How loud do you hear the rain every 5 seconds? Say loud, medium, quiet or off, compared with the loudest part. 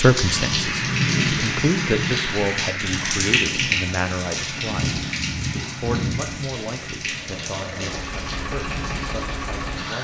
loud, medium.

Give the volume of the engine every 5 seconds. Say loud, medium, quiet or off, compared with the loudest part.
off, loud.